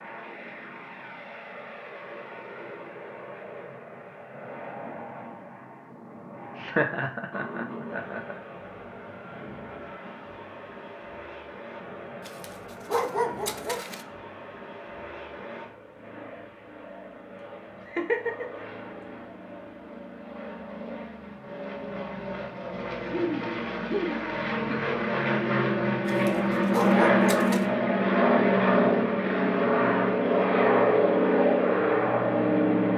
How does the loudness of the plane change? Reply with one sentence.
The loudness of the plane goes up.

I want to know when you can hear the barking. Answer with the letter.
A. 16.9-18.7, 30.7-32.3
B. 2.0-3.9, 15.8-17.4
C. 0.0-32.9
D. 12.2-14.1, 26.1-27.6
D.